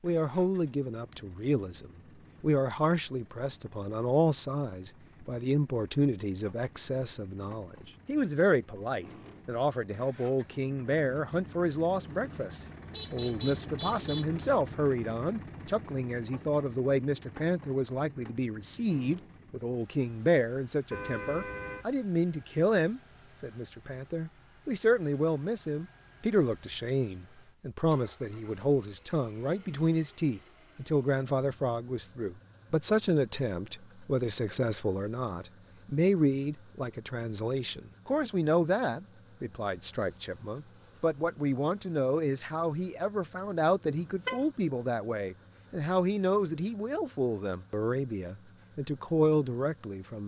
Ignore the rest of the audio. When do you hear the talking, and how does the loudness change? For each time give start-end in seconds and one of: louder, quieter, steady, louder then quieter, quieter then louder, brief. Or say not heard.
0.0-50.2 steady.